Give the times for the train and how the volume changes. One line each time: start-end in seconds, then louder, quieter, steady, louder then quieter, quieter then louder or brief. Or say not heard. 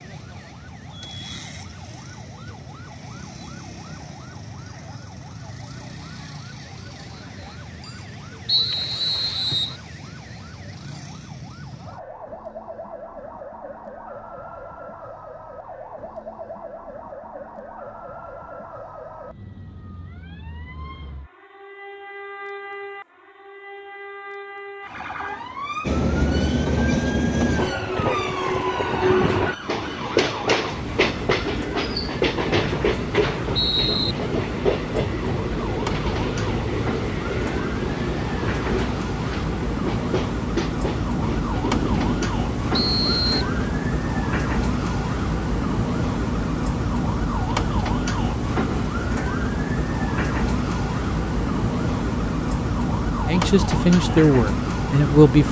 25.9-43.6 quieter.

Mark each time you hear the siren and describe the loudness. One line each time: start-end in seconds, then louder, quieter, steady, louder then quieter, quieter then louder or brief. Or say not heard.
0.0-55.4 louder.